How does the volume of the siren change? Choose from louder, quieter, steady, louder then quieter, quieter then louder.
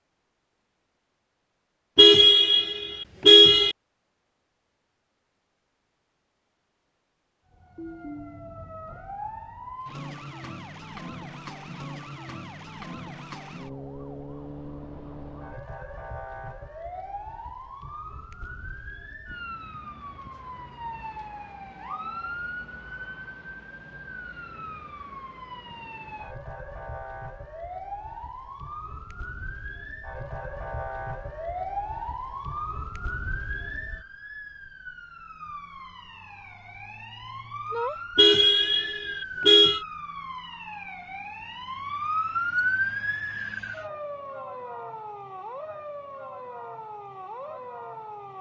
louder.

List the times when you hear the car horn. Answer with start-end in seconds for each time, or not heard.
1.9-3.8, 38.1-39.8.